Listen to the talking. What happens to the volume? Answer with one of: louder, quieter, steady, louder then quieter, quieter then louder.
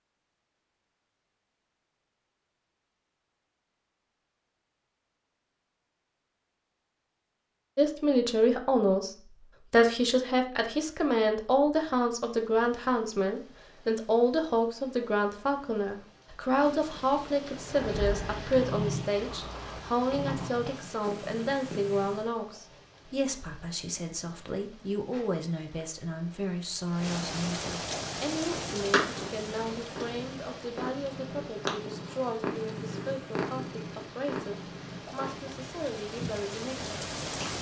quieter.